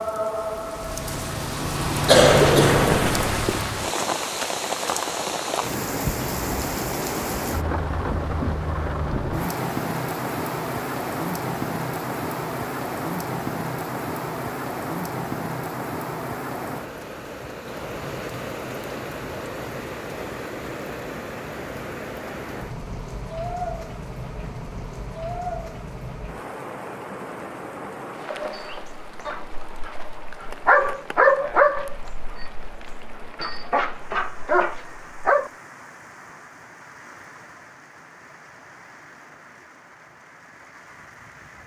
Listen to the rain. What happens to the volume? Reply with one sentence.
The volume of the rain goes down.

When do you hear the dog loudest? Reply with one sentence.
The loudest moment of the dog is at 31 seconds.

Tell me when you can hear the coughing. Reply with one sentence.
The coughing can be heard from 2.0 to 3.6 s.